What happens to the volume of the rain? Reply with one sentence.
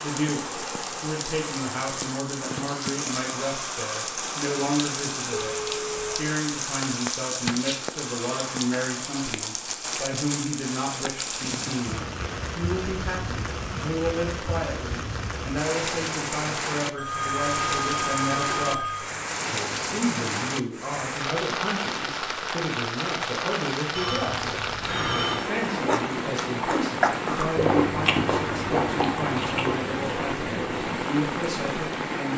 The volume of the rain stays about the same.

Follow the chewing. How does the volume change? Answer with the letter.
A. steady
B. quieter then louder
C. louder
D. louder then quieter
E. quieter
E.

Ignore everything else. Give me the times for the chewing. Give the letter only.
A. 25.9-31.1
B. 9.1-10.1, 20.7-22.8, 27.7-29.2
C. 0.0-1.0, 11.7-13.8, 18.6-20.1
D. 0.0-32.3
A.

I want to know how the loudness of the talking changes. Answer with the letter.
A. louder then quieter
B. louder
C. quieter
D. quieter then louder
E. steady
E.